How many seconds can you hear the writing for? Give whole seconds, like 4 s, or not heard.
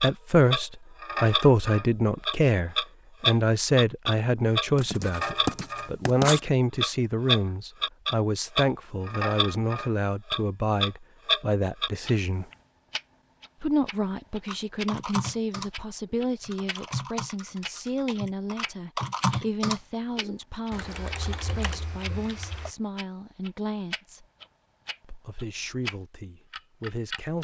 2 s.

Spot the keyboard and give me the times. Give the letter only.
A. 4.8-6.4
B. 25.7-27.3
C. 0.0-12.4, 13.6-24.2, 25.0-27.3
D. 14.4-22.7
D.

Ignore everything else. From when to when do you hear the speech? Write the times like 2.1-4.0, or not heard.
0.0-12.4, 13.6-24.2, 25.0-27.3.